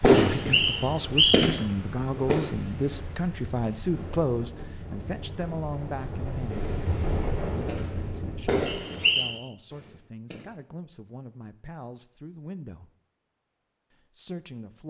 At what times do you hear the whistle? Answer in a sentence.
You can hear the whistle from 0.3 to 1.6 s and from 8.7 to 9.3 s.